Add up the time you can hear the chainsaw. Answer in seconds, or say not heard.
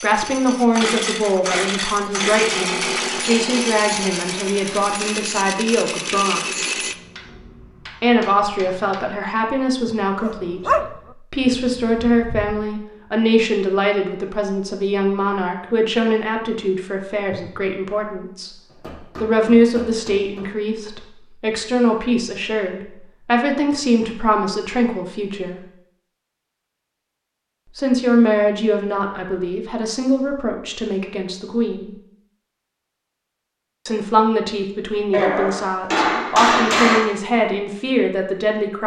7 s.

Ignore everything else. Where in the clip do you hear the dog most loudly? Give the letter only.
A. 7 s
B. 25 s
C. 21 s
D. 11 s
D.